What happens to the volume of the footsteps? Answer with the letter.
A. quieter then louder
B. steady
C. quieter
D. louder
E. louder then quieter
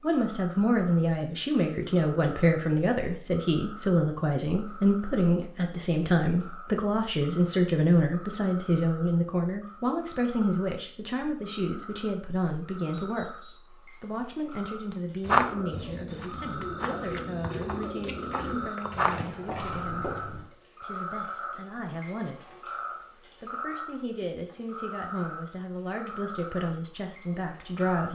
E.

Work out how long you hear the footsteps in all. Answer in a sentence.
The footsteps can be heard for 5 seconds in total.